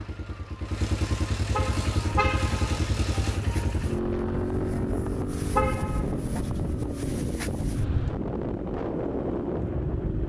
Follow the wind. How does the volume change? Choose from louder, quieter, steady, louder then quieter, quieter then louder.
louder.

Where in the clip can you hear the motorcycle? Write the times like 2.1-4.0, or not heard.
0.0-10.2.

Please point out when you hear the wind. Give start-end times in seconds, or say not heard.
1.7-10.2.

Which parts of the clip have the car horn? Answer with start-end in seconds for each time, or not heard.
1.5-2.9, 5.5-6.2.